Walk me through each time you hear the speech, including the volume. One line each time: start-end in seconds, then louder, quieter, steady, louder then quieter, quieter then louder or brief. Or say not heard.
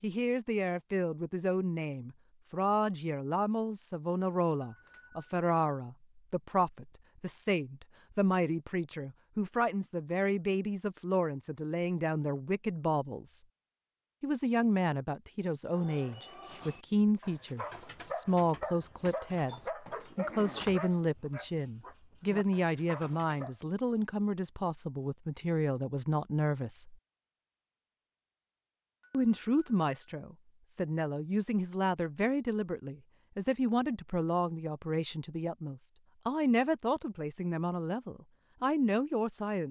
0.0-13.4 steady
14.2-26.9 steady
29.1-39.6 steady.